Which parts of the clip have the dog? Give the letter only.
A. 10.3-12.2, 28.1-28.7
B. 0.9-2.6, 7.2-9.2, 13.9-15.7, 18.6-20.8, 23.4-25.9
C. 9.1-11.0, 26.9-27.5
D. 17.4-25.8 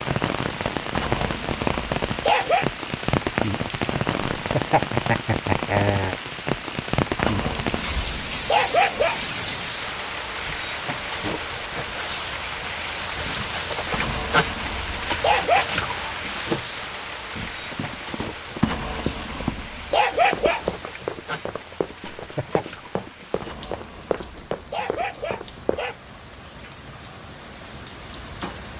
B.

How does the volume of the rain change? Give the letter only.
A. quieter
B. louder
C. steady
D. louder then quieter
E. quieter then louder
A.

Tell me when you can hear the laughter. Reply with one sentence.
You can hear the laughter from 4.2 to 6.2 s and from 22.0 to 22.6 s.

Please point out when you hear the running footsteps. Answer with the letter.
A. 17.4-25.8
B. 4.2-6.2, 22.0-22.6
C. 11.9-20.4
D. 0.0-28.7
A.